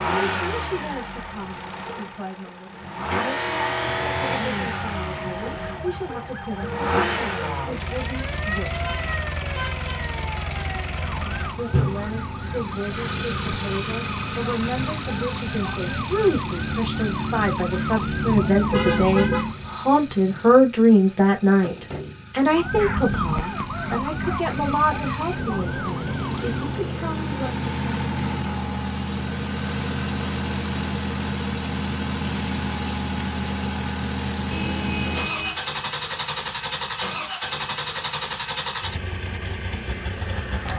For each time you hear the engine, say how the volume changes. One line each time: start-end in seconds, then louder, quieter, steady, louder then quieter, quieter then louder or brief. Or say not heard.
0.0-40.7 quieter then louder.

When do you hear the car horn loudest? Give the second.
19 s.